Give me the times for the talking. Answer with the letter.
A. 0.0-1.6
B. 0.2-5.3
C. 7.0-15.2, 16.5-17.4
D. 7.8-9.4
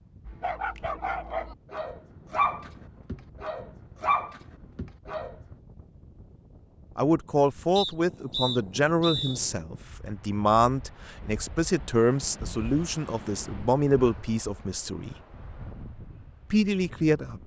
C.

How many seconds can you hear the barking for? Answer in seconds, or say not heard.
5 s.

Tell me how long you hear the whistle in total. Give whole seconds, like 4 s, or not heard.
2 s.